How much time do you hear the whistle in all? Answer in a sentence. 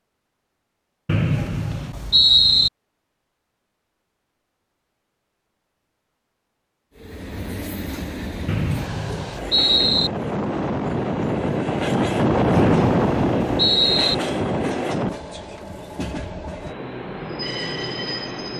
You can hear the whistle for 5 seconds altogether.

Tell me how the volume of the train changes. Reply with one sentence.
The volume of the train goes up, then down.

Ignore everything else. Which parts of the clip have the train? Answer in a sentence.
The train can be heard from 7.0 to 18.5 s.